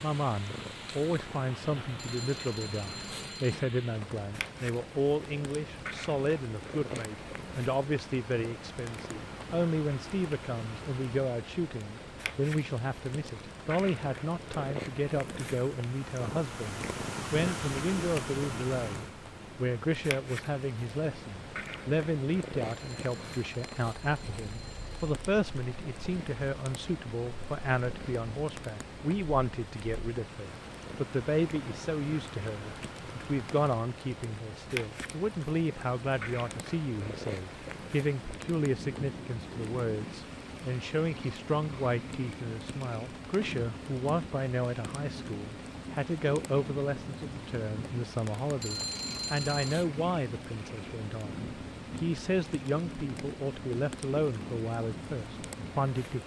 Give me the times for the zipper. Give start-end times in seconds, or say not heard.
not heard.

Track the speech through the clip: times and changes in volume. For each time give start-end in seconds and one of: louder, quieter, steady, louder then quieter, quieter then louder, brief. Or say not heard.
0.0-56.2 steady.